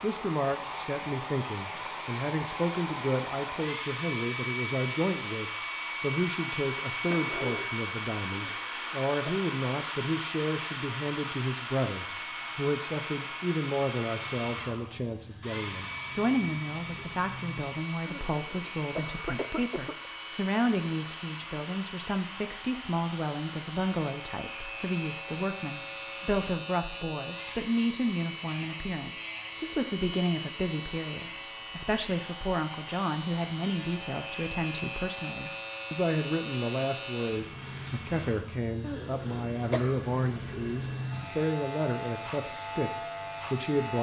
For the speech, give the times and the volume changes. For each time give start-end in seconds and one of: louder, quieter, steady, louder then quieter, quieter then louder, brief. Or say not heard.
0.0-43.9 steady.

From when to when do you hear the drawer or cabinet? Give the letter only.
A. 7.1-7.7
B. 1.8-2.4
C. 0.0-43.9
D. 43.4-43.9
A.